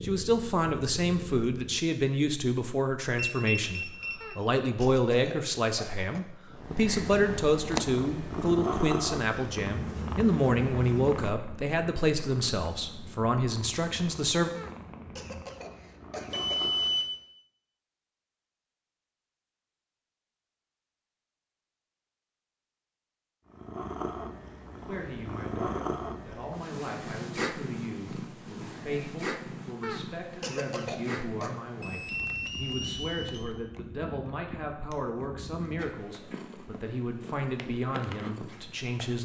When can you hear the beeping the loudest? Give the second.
17 s.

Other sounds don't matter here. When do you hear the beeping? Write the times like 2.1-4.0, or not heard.
3.1-4.4, 16.3-17.1, 31.8-33.5.